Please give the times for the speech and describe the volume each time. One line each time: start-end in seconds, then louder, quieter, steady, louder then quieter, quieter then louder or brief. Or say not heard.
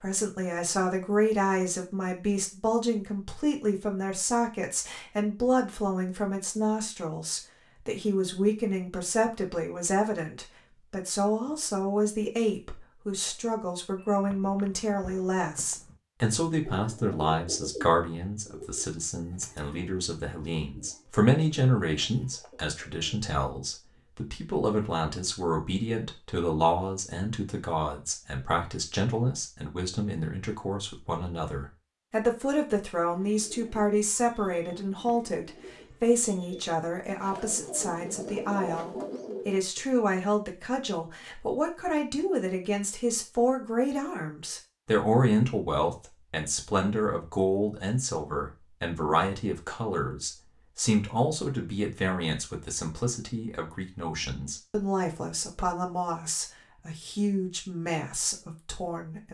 0.0-59.2 steady.